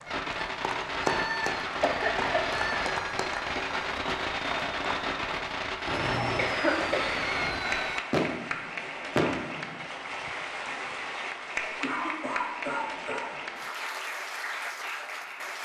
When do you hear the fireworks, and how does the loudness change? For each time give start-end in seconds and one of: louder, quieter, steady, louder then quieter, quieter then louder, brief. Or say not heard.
0.1-9.8 steady.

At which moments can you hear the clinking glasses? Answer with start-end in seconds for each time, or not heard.
not heard.